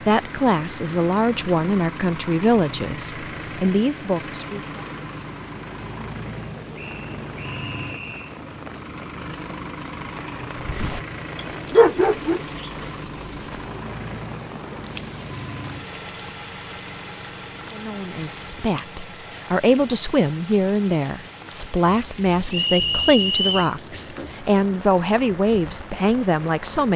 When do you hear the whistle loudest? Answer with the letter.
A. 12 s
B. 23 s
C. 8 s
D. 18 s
B.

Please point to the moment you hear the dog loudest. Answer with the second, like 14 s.
12 s.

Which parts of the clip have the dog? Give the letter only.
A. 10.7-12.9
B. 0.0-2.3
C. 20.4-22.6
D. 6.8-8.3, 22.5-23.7
A.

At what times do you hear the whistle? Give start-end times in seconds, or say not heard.
6.8-8.3, 22.5-23.7.